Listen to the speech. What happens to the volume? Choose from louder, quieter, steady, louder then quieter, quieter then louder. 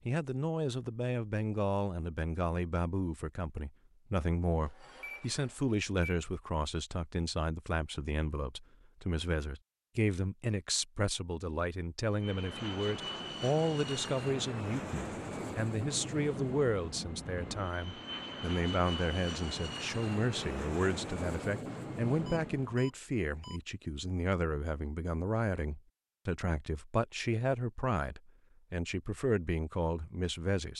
steady.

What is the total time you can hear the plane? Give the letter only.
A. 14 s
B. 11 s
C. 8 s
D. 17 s
B.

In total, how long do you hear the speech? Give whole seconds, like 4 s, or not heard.
31 s.